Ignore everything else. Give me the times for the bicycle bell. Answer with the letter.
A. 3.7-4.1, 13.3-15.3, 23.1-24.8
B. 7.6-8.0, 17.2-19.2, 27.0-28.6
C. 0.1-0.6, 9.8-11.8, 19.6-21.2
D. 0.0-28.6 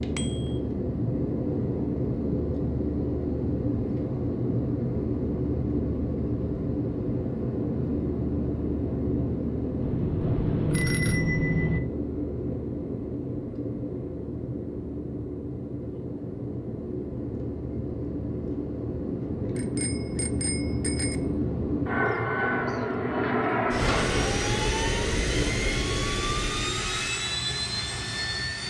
C.